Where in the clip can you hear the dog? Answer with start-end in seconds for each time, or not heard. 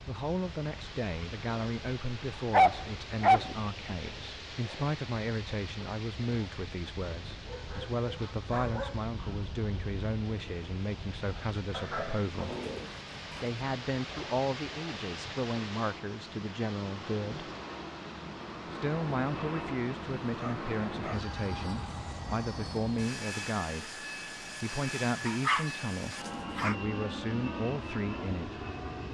2.5-3.5, 7.5-9.3, 11.7-13.6, 20.4-21.2, 25.2-26.8.